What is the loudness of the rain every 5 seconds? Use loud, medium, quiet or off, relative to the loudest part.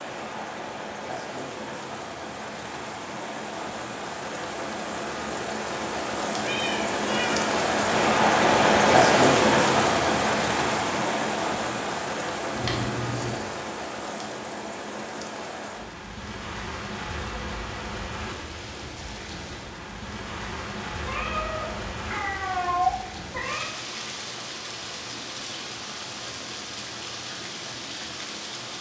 quiet, loud, medium, quiet, quiet, quiet.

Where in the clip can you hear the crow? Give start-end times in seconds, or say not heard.
not heard.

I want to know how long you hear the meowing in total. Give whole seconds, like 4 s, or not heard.
5 s.